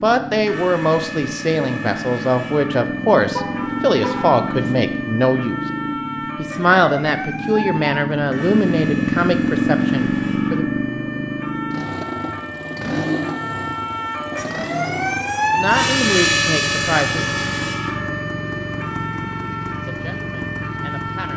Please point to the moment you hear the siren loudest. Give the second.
16 s.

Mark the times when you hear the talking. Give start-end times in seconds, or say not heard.
0.0-5.6, 6.3-10.7, 15.4-17.4, 19.8-21.3.